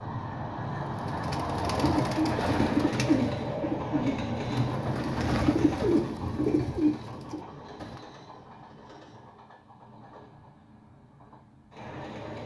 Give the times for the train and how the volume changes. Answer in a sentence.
You can hear the train from 0.0 to 12.4 s, getting quieter.